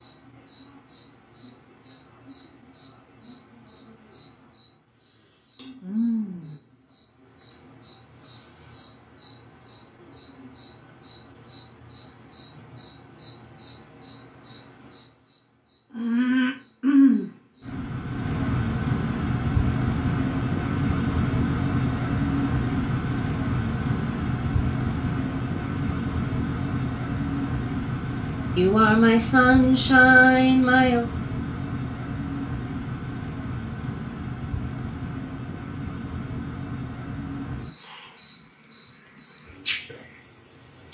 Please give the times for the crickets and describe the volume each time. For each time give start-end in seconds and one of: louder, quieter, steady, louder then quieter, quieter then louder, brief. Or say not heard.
0.0-40.9 louder then quieter.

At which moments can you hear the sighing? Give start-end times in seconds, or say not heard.
28.6-31.1.